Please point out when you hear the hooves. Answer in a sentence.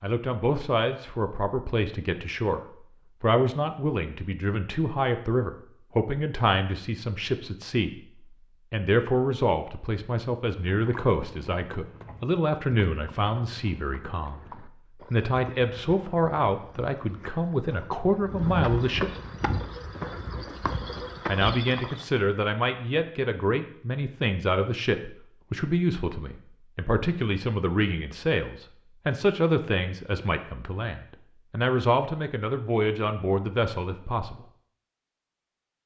You can hear the hooves from 10.7 to 22.1 s.